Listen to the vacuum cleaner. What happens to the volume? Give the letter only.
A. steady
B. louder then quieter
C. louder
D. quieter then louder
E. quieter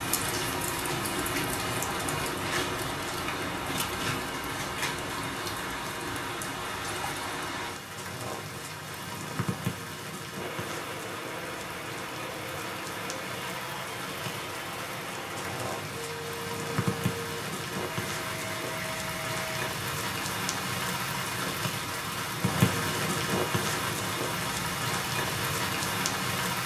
A.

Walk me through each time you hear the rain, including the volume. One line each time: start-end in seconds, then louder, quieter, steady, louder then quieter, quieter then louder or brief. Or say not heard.
0.0-26.6 quieter then louder.